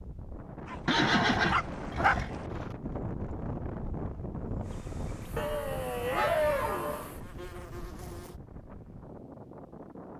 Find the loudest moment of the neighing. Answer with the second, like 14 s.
1 s.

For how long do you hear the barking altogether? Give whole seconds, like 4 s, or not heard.
4 s.